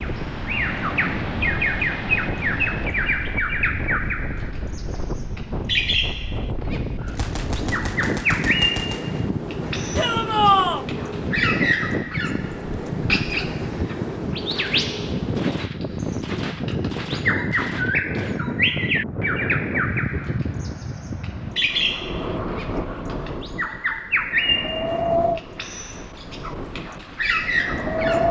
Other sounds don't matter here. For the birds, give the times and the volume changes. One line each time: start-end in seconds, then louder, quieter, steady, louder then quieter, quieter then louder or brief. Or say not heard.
0.0-28.2 steady.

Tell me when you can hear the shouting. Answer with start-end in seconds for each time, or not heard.
9.9-10.8.